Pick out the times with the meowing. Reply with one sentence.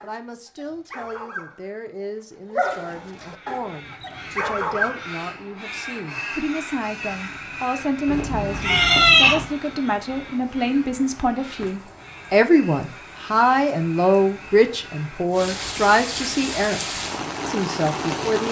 The meowing can be heard from 8.1 to 9.4 s.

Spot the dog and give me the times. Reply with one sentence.
The dog can be heard from 0.0 to 5.0 s.